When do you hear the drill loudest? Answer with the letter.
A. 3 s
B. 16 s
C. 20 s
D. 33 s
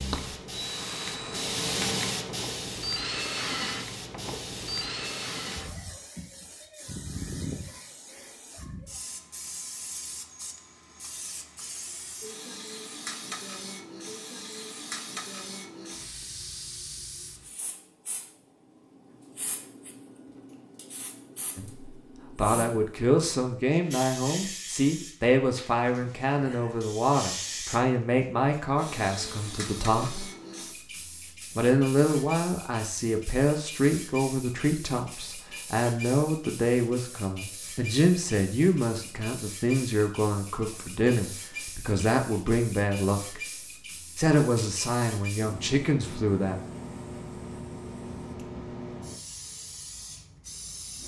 A.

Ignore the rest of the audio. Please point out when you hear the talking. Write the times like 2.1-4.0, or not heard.
21.6-30.2, 31.6-43.4, 44.1-46.5.